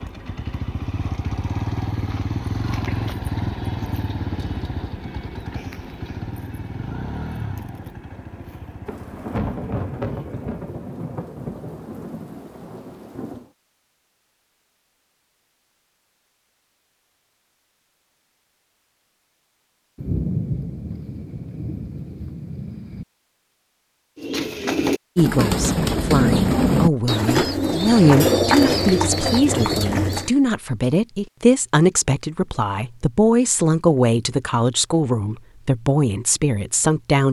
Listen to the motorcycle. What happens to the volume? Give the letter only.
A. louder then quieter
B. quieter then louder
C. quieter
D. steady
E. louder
C.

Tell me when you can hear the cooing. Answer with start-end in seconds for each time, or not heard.
24.1-30.3.